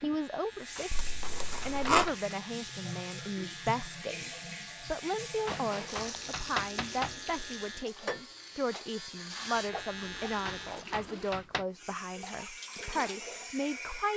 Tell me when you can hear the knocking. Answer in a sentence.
You can hear the knocking from 0.8 to 2.4 s, from 5.5 to 7.2 s and from 10.4 to 11.7 s.